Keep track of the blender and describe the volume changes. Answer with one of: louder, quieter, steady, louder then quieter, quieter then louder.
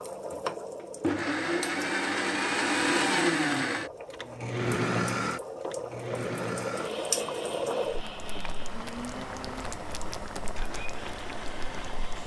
quieter.